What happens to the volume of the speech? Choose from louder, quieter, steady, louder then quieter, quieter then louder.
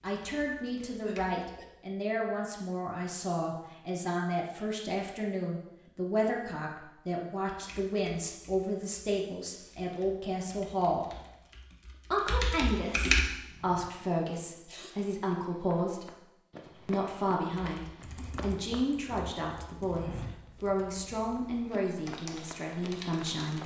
steady.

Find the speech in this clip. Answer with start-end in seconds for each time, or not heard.
0.0-11.1, 12.1-16.1, 16.9-23.6.